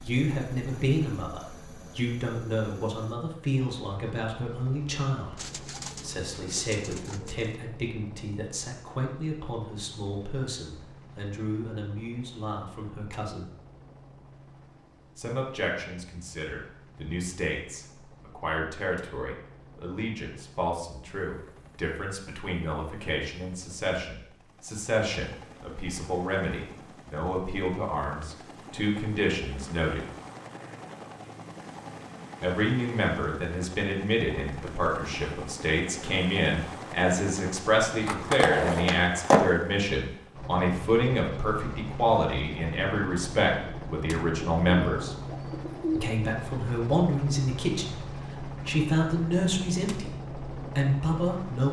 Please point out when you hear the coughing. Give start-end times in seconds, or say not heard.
not heard.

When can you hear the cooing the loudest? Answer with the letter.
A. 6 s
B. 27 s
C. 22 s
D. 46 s
D.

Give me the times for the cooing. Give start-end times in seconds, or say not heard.
5.3-7.5, 44.4-46.1.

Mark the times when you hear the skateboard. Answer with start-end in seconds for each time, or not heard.
37.9-39.7.